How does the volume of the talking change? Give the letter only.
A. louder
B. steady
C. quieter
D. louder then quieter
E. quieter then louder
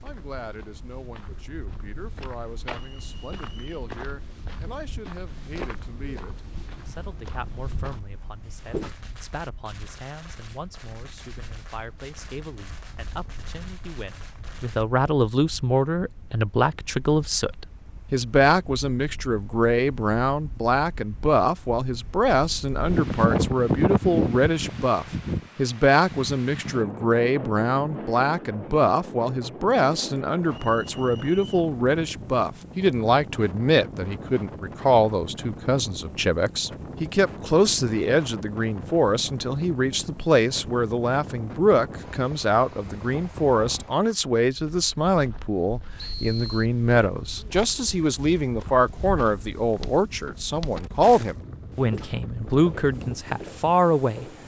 A.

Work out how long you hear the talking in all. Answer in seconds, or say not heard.
54 s.